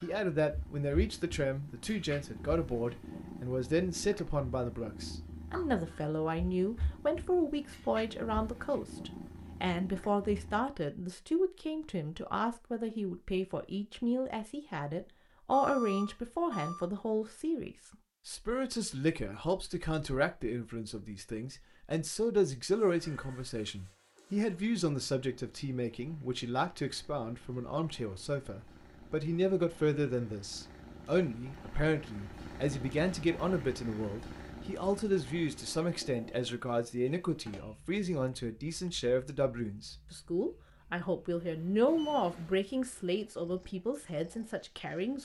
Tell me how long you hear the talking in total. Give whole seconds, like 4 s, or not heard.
45 s.